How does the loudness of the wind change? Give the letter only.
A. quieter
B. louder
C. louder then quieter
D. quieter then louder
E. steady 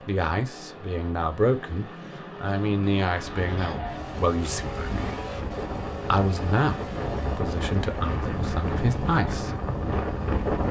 B.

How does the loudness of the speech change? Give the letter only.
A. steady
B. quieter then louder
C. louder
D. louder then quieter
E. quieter
A.